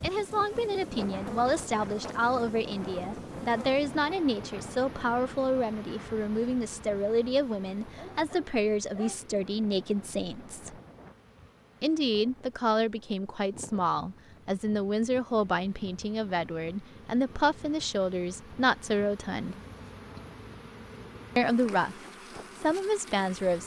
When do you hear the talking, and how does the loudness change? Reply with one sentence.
You can hear the talking from 0.0 to 10.8 s, at a steady volume; from 11.8 to 19.6 s, at a steady volume; and briefly from 21.4 to 23.6 s.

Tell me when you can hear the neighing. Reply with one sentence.
The neighing can't be heard in this clip.